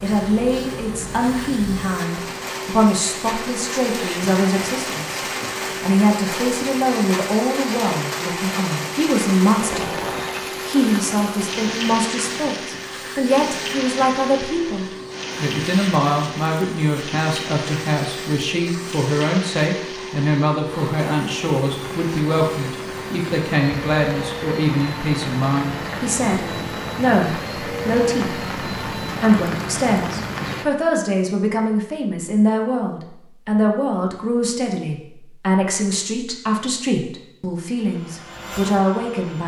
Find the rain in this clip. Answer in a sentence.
The rain can be heard from 0.0 to 30.6 s.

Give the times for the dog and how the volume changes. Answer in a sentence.
The dog can't be heard in this clip.